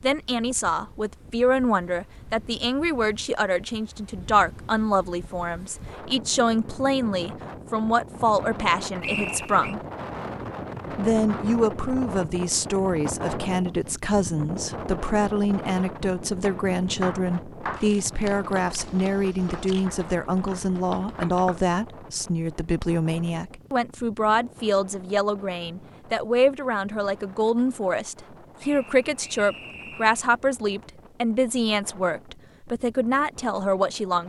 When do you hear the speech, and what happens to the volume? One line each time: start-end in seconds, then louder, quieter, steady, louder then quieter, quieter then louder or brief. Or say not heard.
0.0-9.8 steady
10.9-34.2 steady.